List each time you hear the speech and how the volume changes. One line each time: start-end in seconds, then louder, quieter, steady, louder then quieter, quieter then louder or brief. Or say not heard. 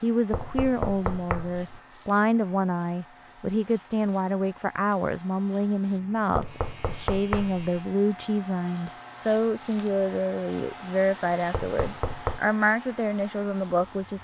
0.0-14.1 steady.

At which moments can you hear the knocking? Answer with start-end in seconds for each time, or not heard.
0.3-1.8, 6.3-7.7, 11.5-12.4.